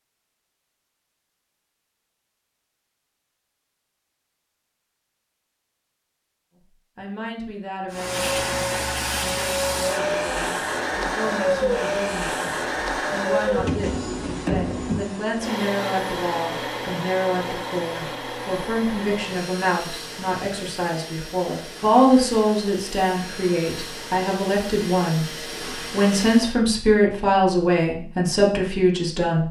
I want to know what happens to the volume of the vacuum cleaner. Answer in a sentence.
The loudness of the vacuum cleaner goes down.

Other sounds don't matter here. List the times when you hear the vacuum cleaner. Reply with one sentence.
The vacuum cleaner can be heard from 7.9 to 26.6 s.